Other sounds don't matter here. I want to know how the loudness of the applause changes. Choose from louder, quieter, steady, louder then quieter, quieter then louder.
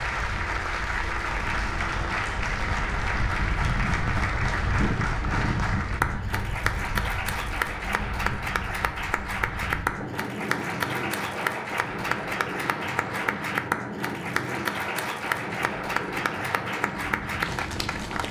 steady.